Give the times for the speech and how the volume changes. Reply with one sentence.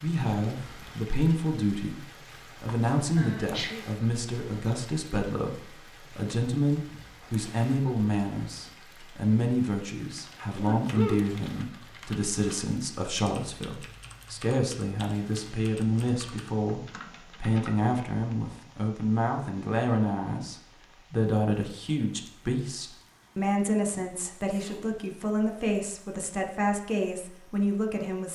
The speech can be heard from 0.0 to 28.3 s, at a steady volume.